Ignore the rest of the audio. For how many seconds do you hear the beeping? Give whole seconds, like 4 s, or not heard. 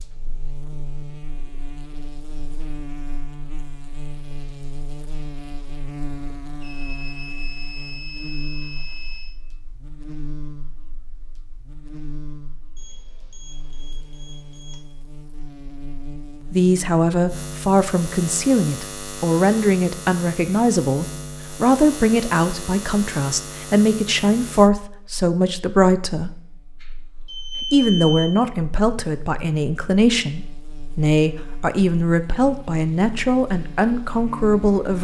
6 s.